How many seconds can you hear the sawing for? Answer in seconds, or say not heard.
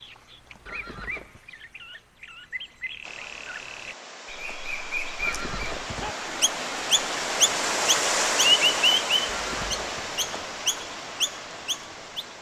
not heard.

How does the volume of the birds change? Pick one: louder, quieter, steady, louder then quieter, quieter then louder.
louder then quieter.